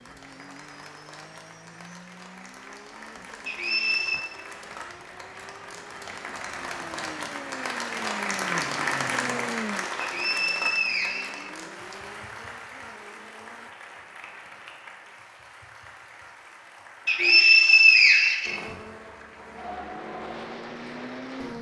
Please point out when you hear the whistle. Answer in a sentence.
You can hear the whistle from 3.5 to 4.2 s, from 10.0 to 11.9 s and from 17.1 to 18.6 s.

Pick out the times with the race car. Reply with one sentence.
You can hear the race car from 0.0 to 13.7 s and from 18.4 to 21.5 s.